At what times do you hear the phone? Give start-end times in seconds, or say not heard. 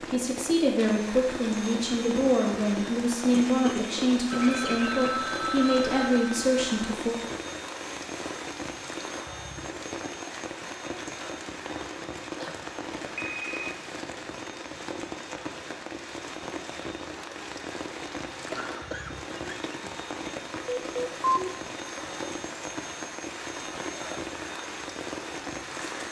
4.3-6.8, 13.1-13.8, 20.6-21.5.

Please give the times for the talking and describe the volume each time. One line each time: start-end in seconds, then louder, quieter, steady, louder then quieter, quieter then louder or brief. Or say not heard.
0.1-7.2 steady.